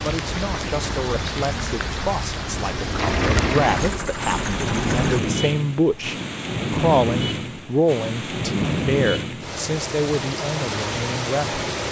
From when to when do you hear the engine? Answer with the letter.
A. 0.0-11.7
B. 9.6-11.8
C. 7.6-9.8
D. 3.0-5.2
D.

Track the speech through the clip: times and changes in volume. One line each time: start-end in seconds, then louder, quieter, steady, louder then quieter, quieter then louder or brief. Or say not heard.
0.0-11.7 louder then quieter.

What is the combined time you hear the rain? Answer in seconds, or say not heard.
12 s.